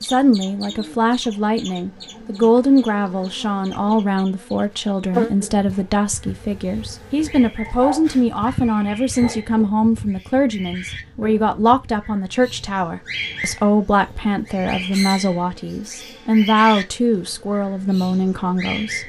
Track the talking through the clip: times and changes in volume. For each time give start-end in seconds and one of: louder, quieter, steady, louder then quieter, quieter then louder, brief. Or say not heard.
0.0-19.0 steady.